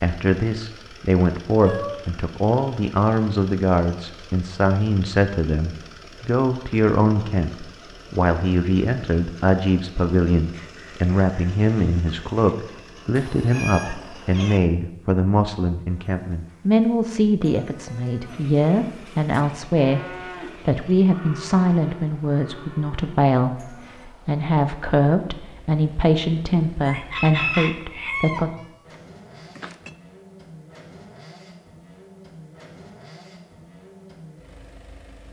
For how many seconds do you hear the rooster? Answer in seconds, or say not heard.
4 s.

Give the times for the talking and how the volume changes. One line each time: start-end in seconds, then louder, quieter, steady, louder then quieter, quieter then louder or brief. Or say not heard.
0.0-28.5 steady.